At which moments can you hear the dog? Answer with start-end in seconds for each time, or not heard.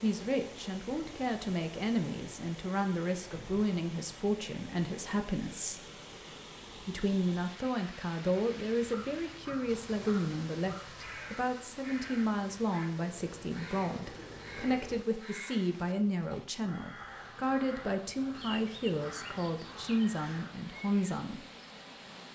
not heard.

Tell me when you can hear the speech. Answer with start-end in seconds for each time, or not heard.
0.0-5.8, 6.8-21.4.